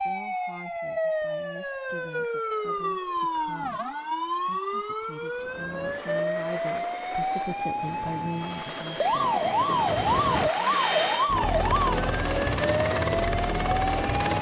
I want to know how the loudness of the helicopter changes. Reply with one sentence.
The loudness of the helicopter goes up.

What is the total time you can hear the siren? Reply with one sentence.
You can hear the siren for 14 seconds altogether.